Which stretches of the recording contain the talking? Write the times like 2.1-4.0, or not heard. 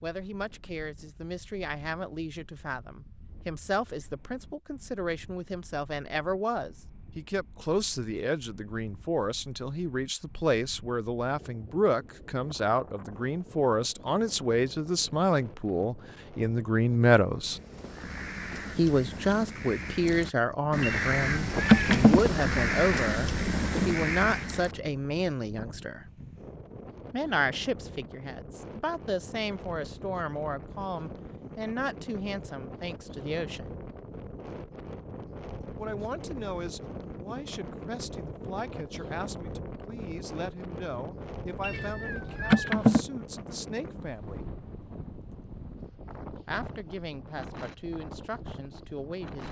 0.0-17.6, 18.8-26.1, 27.1-33.6, 35.8-44.5, 46.5-49.4.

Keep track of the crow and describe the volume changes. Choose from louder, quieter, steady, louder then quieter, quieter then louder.
louder.